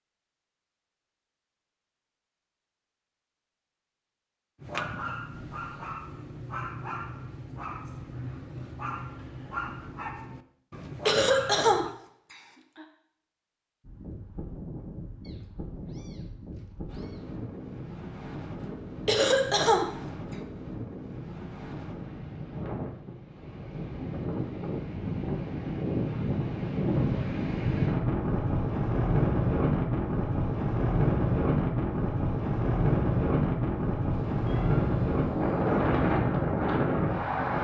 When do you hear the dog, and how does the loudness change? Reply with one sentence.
The dog can be heard from 4.6 to 11.9 s, at a steady volume.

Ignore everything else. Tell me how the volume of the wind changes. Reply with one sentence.
The loudness of the wind goes up.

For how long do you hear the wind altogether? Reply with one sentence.
You can hear the wind for 24 seconds altogether.